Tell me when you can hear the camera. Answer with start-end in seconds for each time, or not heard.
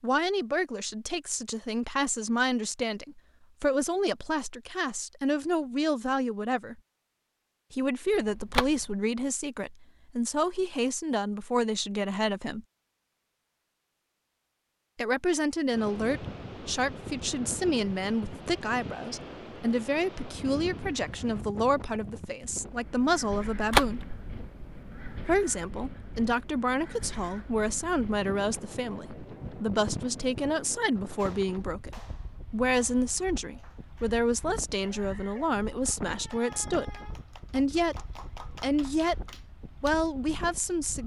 8.1-8.9, 23.6-25.1.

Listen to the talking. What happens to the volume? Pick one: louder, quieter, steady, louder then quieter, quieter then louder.
steady.